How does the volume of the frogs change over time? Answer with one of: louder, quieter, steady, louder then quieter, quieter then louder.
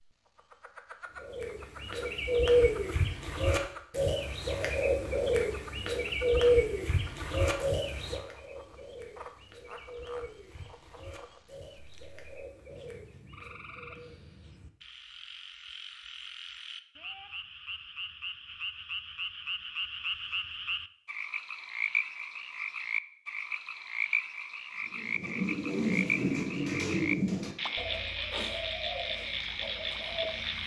louder.